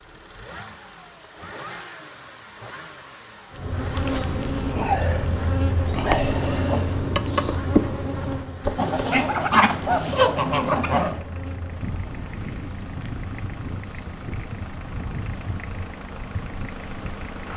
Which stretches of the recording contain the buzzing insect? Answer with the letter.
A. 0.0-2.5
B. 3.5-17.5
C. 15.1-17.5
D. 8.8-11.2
B.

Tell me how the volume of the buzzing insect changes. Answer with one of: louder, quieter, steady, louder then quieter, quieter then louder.
quieter.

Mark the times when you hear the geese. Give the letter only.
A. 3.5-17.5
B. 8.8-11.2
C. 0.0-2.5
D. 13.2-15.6
B.